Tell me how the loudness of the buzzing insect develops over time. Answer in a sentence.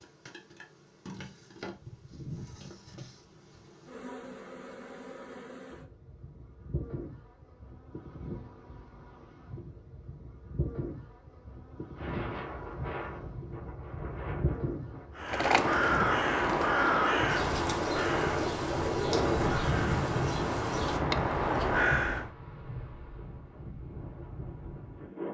The loudness of the buzzing insect goes up.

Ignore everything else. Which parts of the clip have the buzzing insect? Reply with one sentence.
The buzzing insect can be heard from 0.0 to 21.0 s.